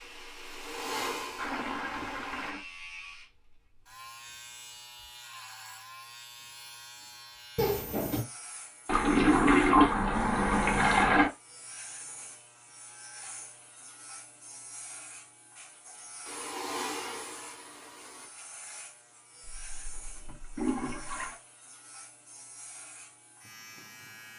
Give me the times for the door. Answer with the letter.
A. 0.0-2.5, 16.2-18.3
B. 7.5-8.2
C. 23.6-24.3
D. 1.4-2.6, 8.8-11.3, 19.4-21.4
B.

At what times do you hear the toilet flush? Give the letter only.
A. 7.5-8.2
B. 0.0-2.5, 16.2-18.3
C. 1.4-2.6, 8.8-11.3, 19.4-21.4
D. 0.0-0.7
C.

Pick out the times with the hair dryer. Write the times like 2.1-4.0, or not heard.
0.0-2.5, 16.2-18.3.